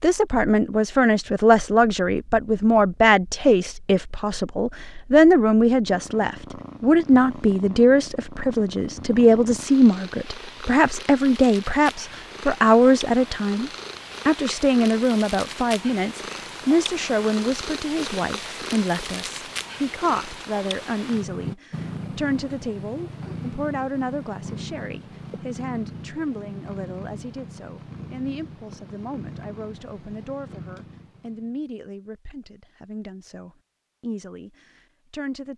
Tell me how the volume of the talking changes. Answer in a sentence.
The loudness of the talking goes down.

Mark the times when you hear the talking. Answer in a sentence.
The talking can be heard from 0.0 to 35.5 s.